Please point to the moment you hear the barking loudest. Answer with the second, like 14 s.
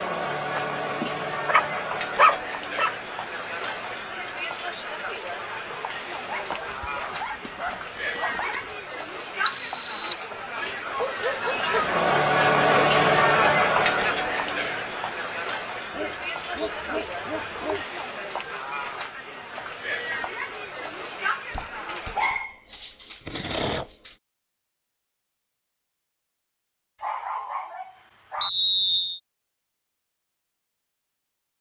2 s.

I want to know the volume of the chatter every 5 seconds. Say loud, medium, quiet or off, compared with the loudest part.
medium, medium, loud, medium, medium, off, off.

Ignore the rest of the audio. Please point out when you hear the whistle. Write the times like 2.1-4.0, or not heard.
9.4-10.2, 28.4-29.2.